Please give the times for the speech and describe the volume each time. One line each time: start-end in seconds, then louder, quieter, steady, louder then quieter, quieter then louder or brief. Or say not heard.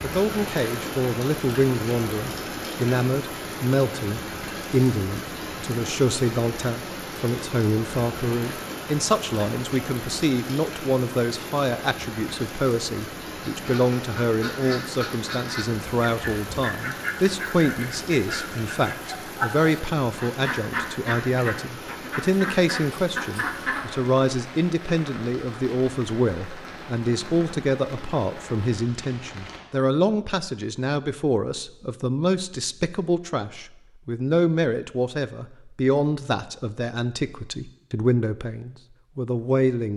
0.0-39.9 steady.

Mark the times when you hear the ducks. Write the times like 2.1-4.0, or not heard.
13.4-23.9.